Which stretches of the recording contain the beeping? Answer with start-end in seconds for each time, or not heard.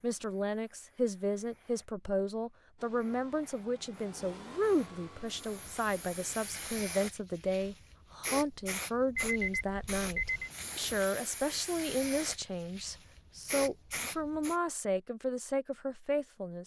9.2-10.5.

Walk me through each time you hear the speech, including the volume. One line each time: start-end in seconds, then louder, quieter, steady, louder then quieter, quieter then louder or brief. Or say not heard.
0.0-16.6 steady.